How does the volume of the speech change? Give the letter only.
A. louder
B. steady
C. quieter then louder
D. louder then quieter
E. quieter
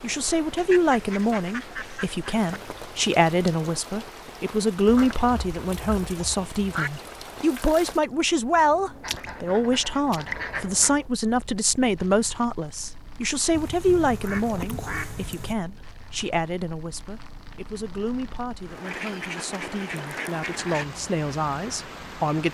E.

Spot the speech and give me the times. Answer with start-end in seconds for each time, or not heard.
0.0-22.5.